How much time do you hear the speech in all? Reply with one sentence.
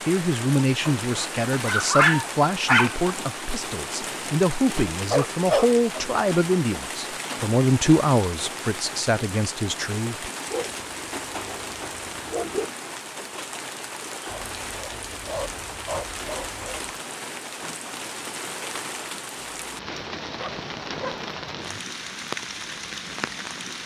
You can hear the speech for 10 seconds altogether.